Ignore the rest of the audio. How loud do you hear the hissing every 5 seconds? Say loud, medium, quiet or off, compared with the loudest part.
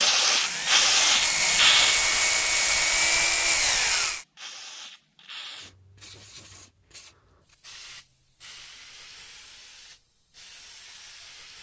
loud, quiet, quiet.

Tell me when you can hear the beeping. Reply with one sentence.
The beeping can't be heard in this clip.